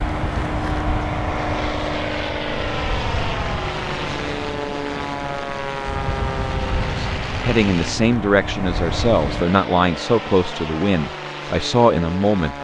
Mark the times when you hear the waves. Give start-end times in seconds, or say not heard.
0.0-9.4.